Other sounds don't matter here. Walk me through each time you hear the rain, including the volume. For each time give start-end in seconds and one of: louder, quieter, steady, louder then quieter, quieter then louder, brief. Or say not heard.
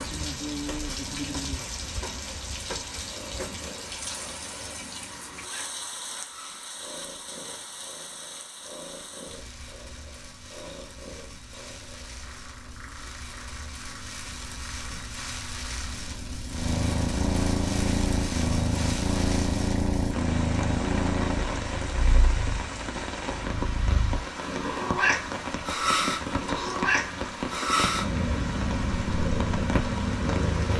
0.0-30.7 quieter then louder.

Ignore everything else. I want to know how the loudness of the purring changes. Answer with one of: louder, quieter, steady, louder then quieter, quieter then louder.
louder.